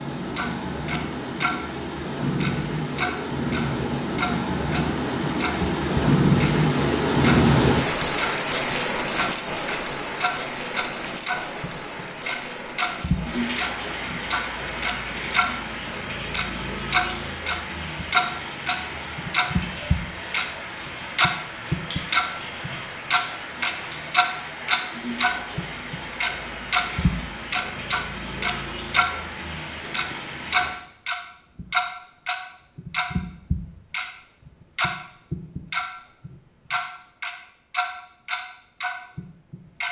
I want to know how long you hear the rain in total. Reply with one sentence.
The rain can be heard for 31 seconds in total.